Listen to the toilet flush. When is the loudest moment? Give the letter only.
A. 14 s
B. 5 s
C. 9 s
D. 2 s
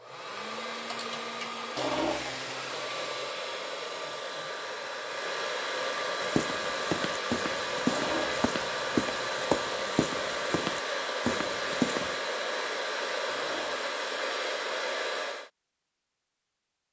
D.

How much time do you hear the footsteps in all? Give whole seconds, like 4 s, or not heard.
6 s.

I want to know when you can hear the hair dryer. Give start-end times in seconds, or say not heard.
0.0-15.5.